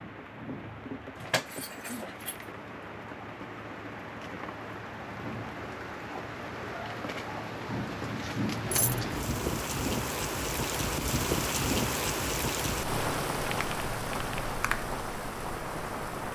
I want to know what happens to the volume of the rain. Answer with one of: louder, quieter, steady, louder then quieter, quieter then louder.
louder.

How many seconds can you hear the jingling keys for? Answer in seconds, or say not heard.
2 s.